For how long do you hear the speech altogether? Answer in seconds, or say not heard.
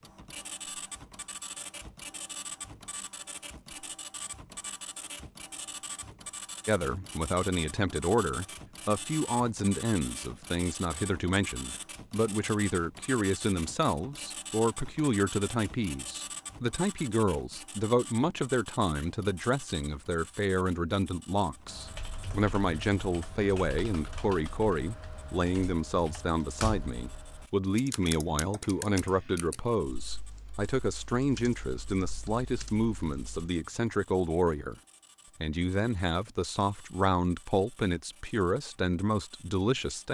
33 s.